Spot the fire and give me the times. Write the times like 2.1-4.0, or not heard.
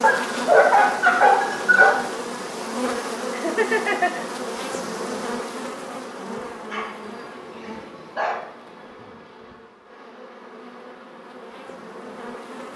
not heard.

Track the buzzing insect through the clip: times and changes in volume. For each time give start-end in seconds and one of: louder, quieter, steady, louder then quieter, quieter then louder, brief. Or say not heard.
0.0-12.7 quieter.